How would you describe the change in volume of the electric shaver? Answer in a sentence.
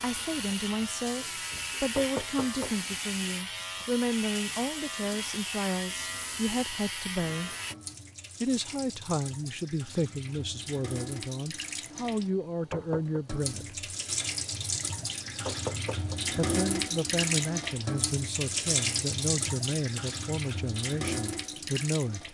The volume of the electric shaver stays about the same.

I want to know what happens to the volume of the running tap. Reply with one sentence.
The volume of the running tap goes up.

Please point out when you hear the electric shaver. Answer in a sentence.
The electric shaver can be heard from 0.0 to 7.8 s.